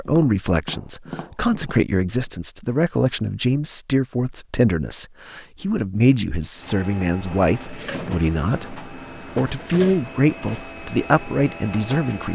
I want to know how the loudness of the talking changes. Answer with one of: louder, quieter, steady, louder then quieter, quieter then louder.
steady.